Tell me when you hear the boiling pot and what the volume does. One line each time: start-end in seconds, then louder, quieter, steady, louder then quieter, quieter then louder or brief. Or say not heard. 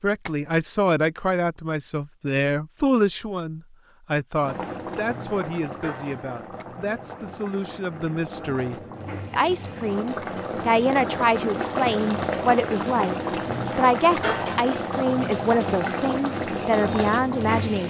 4.4-17.8 louder.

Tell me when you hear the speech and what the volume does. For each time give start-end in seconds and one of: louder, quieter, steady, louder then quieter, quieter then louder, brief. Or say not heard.
0.0-13.2 quieter then louder
13.8-17.8 steady.